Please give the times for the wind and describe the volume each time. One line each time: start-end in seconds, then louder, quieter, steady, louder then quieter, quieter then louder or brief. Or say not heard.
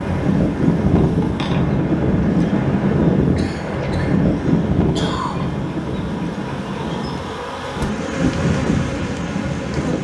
0.0-10.0 quieter.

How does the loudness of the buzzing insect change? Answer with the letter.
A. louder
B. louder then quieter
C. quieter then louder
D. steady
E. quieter
C.